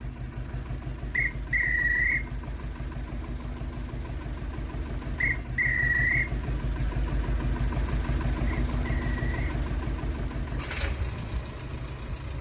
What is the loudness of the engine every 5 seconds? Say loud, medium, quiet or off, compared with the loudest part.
medium, loud, loud.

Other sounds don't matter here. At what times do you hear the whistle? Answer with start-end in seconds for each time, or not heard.
1.1-2.2, 5.2-6.3, 8.4-9.4.